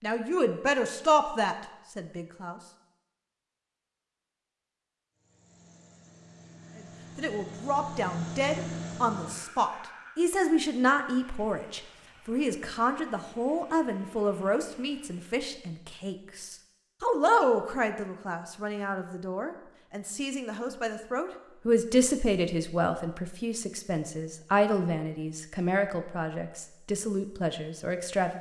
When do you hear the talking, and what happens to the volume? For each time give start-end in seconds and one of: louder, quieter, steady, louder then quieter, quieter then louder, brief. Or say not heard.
0.0-2.6 brief
6.8-28.3 steady.